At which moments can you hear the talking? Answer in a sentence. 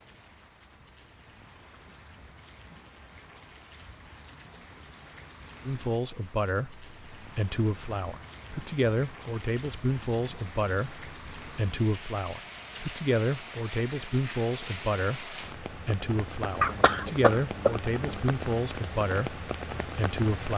The talking can be heard from 5.7 to 20.5 s.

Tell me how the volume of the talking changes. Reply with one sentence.
The loudness of the talking stays about the same.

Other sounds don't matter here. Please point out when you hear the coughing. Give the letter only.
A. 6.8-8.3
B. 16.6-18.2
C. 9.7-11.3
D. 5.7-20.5
B.